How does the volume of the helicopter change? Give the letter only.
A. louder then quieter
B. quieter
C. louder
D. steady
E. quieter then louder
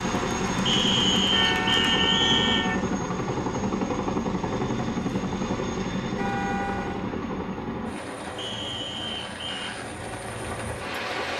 B.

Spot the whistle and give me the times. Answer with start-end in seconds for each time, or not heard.
0.7-2.6, 8.3-9.8.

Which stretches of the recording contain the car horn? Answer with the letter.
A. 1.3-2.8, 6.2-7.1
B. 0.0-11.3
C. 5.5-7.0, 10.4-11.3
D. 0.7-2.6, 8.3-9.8
A.